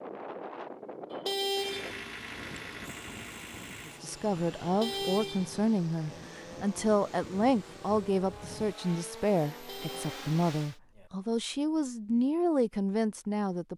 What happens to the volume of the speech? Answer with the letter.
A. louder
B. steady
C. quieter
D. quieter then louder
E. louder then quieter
B.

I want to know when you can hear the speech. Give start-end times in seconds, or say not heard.
3.9-13.7.